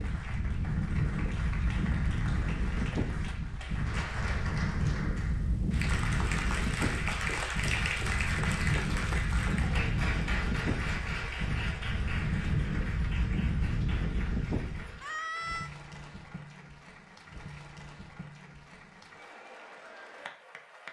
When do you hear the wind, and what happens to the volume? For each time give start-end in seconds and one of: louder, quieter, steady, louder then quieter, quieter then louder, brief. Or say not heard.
0.0-15.1 steady.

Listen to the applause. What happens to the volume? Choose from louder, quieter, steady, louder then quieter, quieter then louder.
louder then quieter.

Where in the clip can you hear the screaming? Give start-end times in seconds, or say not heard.
15.0-15.7.